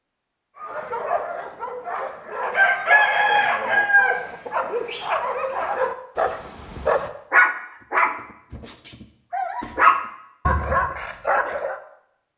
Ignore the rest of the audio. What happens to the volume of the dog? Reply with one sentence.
The loudness of the dog goes up.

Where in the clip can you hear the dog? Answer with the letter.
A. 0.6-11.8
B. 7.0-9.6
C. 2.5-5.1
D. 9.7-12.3
A.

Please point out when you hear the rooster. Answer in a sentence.
You can hear the rooster from 2.5 to 5.1 s.